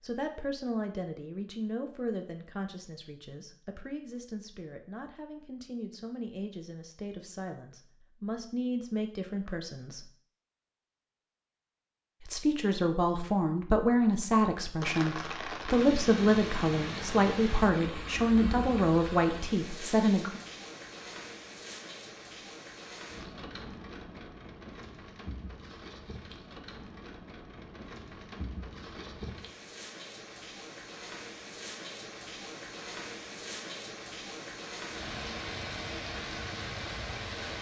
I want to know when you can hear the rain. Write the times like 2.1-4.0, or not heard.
14.8-37.5.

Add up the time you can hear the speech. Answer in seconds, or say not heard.
18 s.